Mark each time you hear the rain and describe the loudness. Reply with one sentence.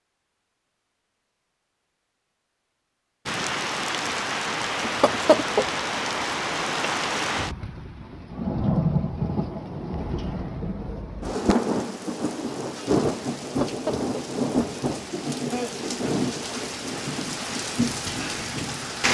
The rain can be heard from 3.2 to 19.0 s, at a steady volume.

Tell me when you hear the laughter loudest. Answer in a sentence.
The loudest moment of the laughter is at 5 seconds.